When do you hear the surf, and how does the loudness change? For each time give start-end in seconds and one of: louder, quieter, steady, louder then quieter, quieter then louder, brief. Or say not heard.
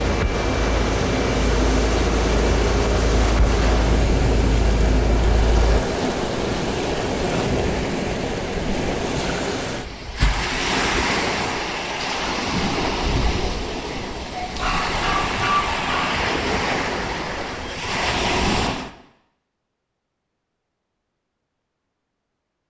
0.0-18.9 steady.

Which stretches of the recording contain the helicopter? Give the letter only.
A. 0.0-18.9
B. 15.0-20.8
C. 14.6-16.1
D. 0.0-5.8
D.